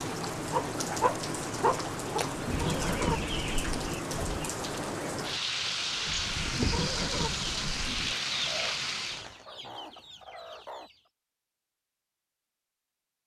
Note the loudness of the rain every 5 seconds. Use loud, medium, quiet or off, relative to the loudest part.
loud, loud, off.